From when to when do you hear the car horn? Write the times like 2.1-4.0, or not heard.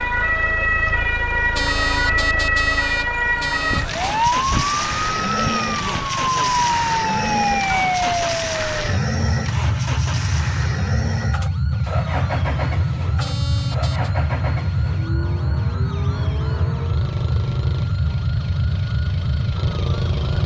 1.5-4.2, 13.2-14.1.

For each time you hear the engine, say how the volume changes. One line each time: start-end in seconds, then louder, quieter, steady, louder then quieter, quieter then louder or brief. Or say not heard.
0.0-20.4 louder then quieter.